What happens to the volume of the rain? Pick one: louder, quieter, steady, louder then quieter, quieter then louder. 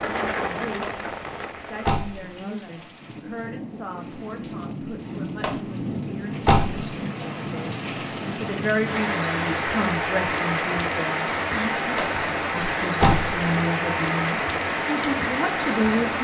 louder.